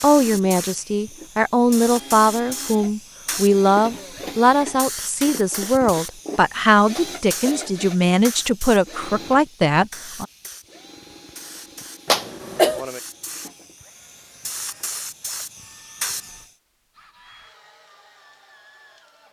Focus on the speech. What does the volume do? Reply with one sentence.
The loudness of the speech stays about the same.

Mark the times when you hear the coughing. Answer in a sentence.
The coughing can be heard from 7.0 to 7.8 s and from 12.1 to 12.8 s.